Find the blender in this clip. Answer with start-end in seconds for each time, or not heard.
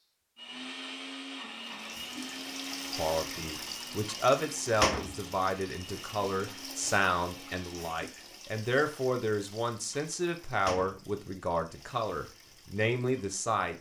0.3-8.0.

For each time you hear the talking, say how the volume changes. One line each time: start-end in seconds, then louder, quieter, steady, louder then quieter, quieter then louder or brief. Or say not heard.
3.0-13.7 steady.